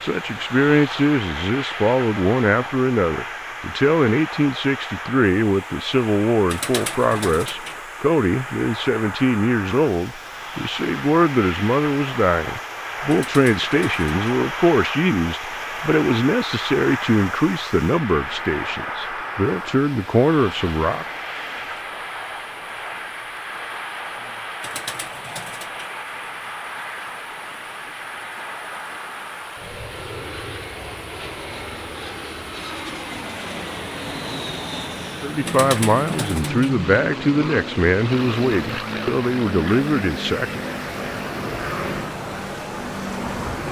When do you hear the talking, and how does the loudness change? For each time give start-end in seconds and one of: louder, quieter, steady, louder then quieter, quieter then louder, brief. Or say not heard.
0.0-21.1 steady
35.2-40.6 steady.